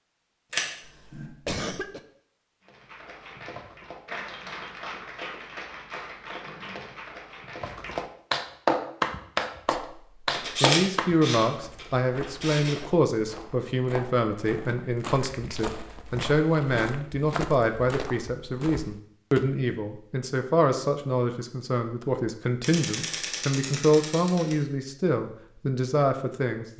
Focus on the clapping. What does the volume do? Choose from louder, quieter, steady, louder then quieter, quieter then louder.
louder.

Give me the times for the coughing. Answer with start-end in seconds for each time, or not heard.
0.8-2.0.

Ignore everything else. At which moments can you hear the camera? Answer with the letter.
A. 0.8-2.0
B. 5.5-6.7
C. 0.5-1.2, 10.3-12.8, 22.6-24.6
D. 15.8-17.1
C.